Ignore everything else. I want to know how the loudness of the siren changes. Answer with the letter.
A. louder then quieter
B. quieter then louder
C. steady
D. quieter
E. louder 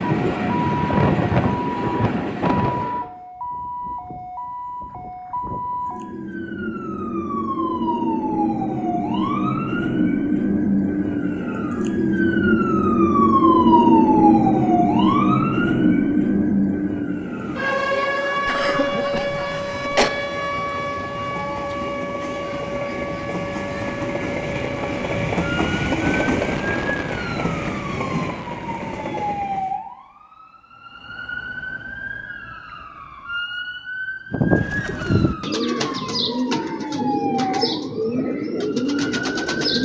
A.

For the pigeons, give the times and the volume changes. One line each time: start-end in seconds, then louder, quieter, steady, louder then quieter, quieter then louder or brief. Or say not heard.
34.3-39.8 steady.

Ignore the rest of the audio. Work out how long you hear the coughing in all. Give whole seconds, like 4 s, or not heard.
2 s.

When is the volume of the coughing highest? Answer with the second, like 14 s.
20 s.